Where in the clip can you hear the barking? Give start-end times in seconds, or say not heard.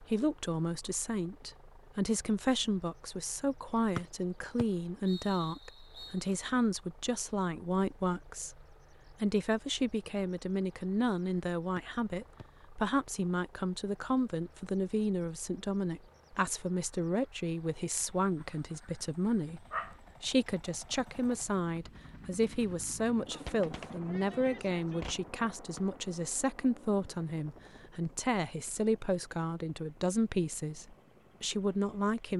18.4-20.0.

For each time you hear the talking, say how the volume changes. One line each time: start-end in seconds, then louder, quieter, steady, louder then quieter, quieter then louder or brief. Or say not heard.
0.0-32.3 steady.